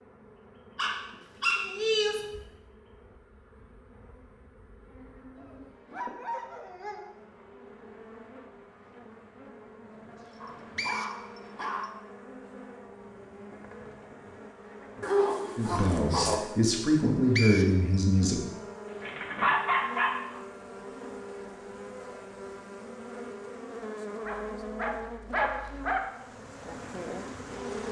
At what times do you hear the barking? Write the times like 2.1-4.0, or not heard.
0.8-2.2, 5.3-7.1, 10.4-11.9, 15.0-16.4, 18.9-20.4, 24.2-26.0.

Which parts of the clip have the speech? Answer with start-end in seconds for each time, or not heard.
15.6-18.4.